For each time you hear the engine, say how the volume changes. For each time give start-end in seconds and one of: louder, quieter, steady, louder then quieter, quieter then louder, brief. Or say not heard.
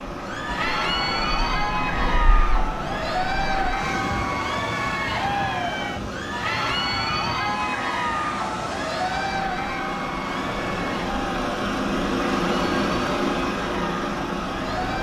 0.0-14.9 louder.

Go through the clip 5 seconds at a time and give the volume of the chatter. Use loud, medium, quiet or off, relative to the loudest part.
loud, loud, medium.